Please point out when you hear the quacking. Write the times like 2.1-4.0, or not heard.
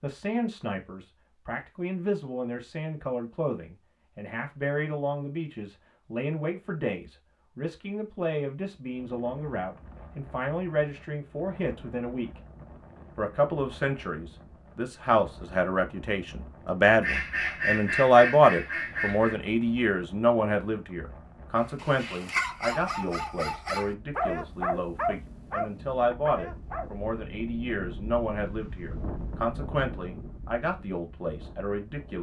17.0-19.4.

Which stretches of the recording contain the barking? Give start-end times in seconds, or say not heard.
21.6-26.9.